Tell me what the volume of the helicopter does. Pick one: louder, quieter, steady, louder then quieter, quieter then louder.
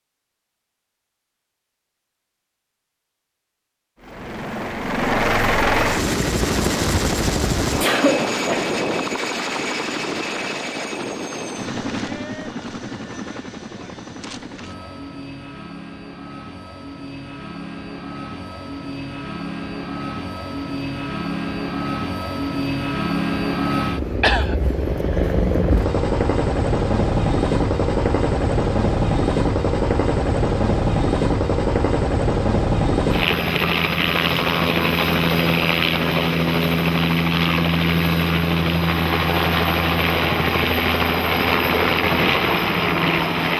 quieter then louder.